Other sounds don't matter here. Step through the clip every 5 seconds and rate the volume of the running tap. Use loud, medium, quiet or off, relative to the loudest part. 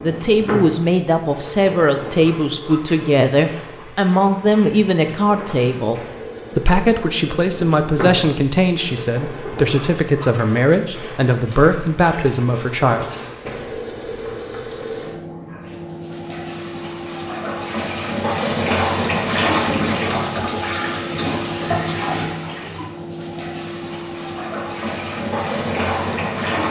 medium, medium, medium, loud, loud, loud.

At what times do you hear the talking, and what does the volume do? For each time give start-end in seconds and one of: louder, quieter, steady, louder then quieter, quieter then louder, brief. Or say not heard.
0.0-13.1 steady.